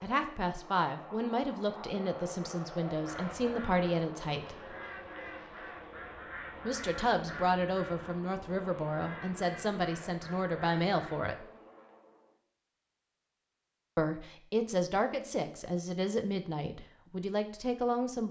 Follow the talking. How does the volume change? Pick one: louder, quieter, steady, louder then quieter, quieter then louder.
steady.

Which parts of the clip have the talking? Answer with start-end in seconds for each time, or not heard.
0.0-4.7, 6.7-11.4, 13.9-18.2.